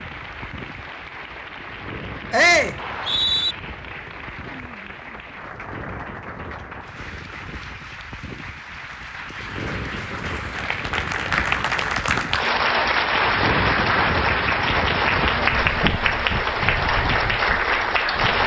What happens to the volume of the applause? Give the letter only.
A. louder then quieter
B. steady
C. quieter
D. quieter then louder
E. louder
E.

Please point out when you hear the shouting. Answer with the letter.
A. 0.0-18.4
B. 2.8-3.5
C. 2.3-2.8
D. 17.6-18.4
C.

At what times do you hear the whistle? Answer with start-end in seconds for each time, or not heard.
2.8-3.5.